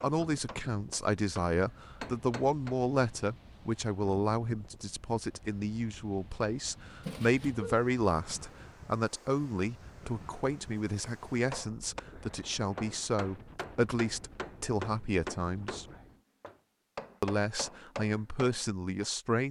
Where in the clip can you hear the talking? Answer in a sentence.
The talking can be heard from 0.0 to 15.8 s and from 17.2 to 19.4 s.